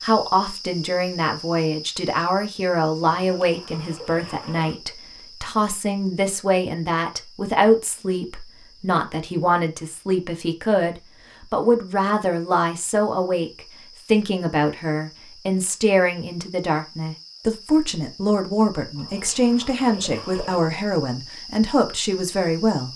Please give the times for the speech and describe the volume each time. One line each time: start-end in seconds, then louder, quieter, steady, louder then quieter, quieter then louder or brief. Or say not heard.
0.0-22.9 steady.